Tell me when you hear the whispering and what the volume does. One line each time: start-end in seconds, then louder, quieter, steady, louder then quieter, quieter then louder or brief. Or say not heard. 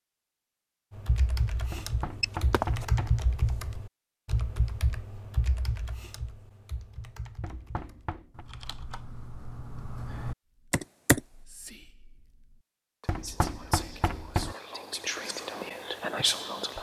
10.5-16.7 quieter then louder.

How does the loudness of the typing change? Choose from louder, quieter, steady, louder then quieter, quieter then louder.
quieter then louder.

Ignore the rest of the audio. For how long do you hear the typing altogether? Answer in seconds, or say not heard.
10 s.